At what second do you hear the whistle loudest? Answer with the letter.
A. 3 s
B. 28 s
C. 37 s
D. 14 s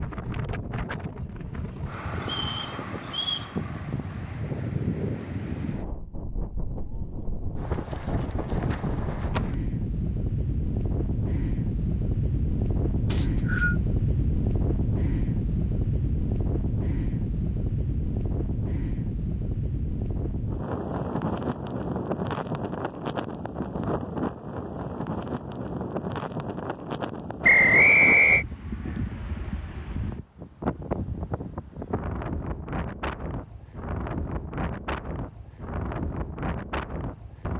B.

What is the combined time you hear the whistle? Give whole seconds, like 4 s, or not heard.
3 s.